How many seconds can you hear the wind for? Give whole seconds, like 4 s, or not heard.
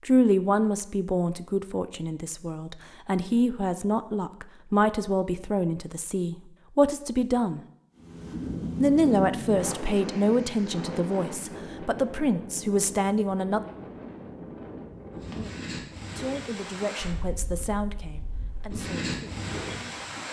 12 s.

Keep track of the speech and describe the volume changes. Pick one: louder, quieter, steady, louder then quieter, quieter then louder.
quieter.